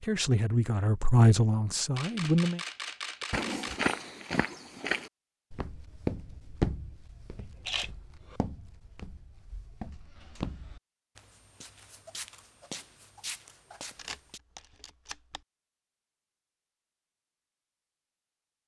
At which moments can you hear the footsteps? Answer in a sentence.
The footsteps can be heard from 3.2 to 14.4 s.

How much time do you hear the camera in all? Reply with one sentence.
You can hear the camera for 4 seconds altogether.